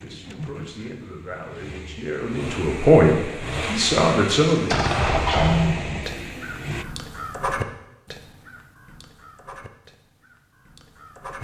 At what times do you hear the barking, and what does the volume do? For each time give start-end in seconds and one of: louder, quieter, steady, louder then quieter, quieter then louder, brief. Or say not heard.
not heard.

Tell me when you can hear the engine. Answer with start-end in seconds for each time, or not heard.
0.0-6.8.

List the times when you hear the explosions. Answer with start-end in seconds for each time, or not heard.
4.5-6.1.